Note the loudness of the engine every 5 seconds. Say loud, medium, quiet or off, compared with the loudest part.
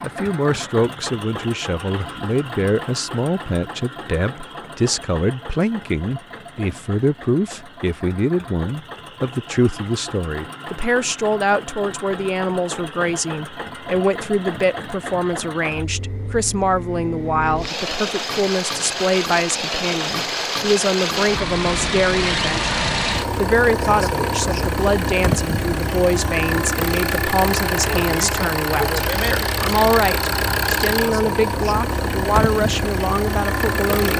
medium, quiet, medium, medium, loud, loud, loud.